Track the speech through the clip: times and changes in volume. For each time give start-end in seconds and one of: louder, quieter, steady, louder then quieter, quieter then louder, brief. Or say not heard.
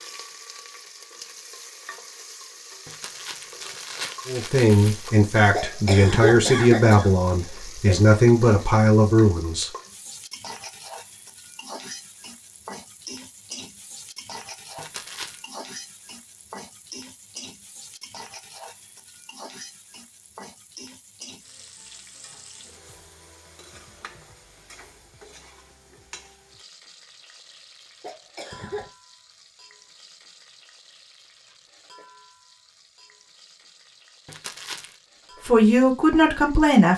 4.2-9.7 steady
35.5-36.9 brief.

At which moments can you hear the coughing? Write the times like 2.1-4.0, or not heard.
5.5-8.0, 28.0-28.9.